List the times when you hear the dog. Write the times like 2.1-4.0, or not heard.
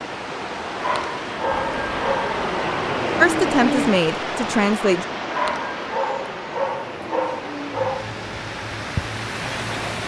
0.8-2.4, 5.3-8.2.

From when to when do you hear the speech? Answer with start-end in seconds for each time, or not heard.
3.2-5.0.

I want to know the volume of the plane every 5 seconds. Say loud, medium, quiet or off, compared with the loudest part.
loud, medium.